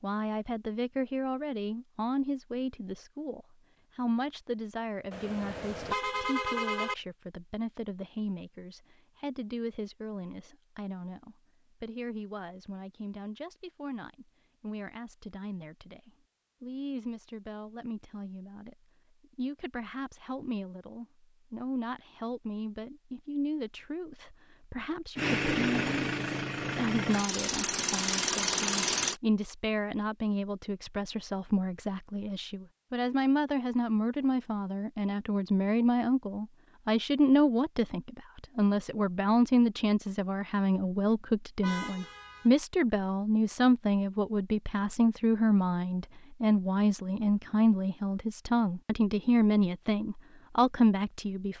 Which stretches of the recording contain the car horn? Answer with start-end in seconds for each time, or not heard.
5.1-7.0, 41.6-42.5.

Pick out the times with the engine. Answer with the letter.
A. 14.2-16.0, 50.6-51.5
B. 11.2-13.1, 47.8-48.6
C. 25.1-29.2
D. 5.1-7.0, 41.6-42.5
C.